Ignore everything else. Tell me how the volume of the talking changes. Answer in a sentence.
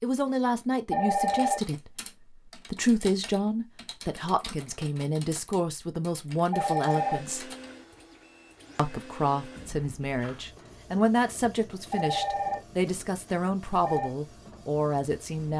The volume of the talking stays about the same.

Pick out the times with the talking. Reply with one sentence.
The talking can be heard from 0.0 to 7.5 s and from 8.8 to 15.5 s.